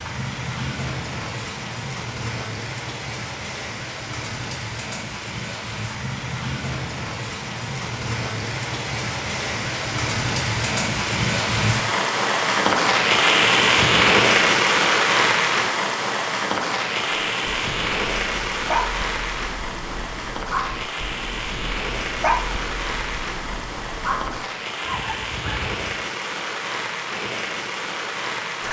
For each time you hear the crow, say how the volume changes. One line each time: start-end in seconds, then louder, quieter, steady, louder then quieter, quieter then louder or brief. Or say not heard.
not heard.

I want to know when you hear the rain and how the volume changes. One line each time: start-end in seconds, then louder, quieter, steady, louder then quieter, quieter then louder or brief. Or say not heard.
0.0-28.6 louder then quieter.